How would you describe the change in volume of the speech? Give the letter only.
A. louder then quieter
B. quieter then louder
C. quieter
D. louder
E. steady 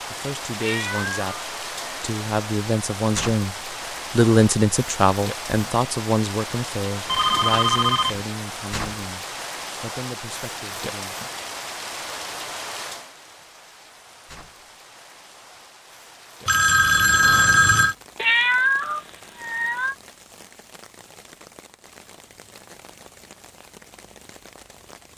A.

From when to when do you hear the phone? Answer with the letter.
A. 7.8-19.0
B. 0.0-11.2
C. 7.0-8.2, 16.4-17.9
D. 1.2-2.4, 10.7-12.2
C.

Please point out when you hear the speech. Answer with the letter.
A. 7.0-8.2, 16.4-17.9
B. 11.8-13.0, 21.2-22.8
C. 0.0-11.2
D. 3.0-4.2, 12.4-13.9
C.